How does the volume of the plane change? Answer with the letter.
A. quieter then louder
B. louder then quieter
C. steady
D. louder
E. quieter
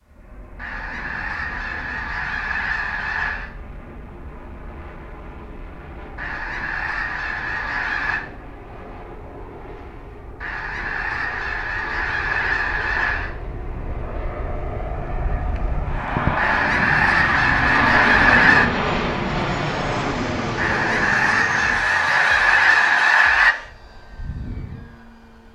B.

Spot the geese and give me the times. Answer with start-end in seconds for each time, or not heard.
0.6-3.5, 6.2-8.2, 10.4-13.3, 16.4-18.7, 20.6-23.6.